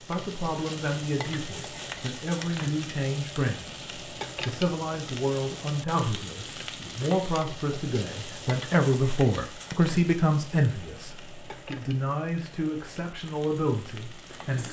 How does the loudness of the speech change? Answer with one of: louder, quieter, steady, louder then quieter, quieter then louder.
louder then quieter.